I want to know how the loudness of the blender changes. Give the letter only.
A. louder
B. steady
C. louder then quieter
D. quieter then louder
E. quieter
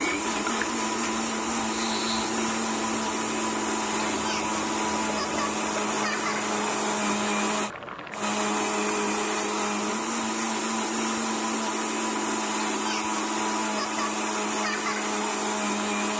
B.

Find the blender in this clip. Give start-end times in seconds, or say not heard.
0.0-16.1.